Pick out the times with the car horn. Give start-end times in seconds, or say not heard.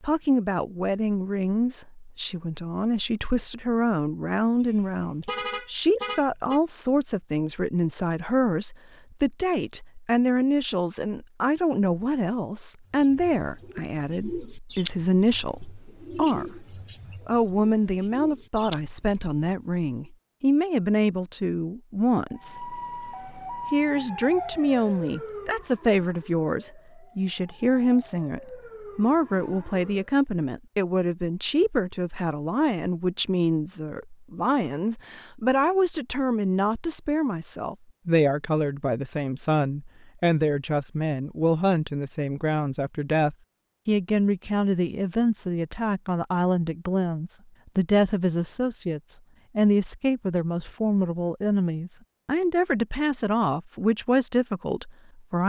4.6-6.6.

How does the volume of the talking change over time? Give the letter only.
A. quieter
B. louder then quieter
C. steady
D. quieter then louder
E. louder
C.